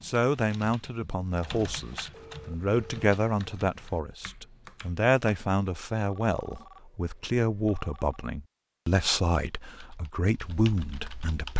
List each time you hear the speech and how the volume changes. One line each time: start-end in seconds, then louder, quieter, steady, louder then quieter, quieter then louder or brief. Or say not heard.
0.0-11.5 steady.